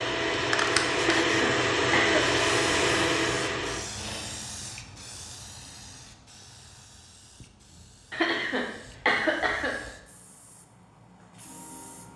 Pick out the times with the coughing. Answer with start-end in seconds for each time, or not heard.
0.9-2.2, 8.1-9.8.